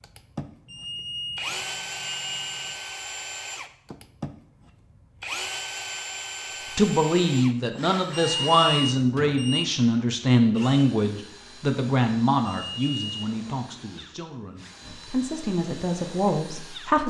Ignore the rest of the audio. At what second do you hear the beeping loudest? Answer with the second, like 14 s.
9 s.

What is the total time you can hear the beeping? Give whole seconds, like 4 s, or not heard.
5 s.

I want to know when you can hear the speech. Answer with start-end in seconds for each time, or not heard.
6.8-17.0.